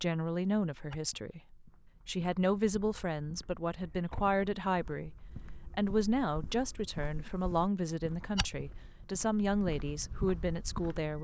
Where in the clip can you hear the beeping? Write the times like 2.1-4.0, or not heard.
not heard.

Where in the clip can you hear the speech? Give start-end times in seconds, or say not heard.
0.0-5.1, 5.8-11.1.